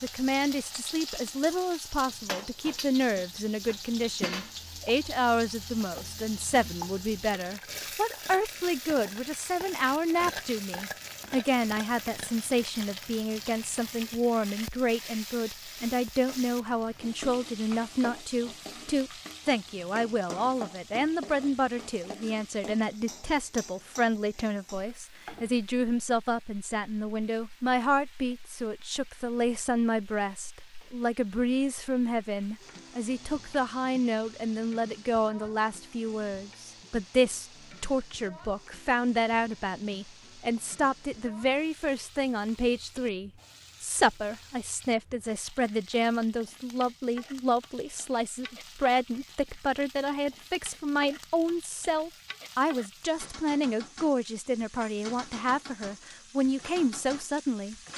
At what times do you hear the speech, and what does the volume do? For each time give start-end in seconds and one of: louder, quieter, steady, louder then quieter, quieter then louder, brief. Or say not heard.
0.0-57.8 steady.